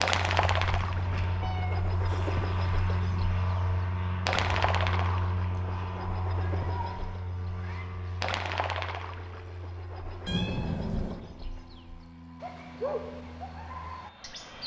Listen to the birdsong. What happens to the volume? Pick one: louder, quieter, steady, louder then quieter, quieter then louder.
quieter then louder.